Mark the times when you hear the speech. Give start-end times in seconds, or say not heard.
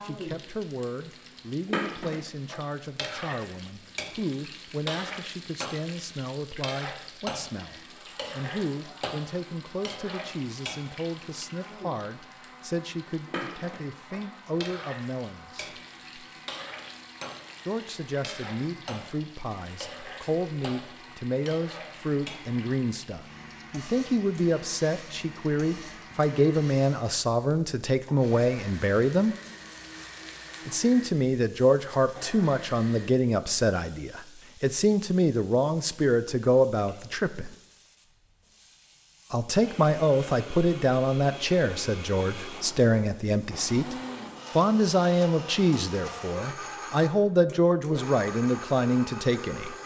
0.0-15.8, 17.6-29.4, 30.6-37.5, 39.3-44.0, 44.5-49.8.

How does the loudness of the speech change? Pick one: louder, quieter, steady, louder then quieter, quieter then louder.
louder.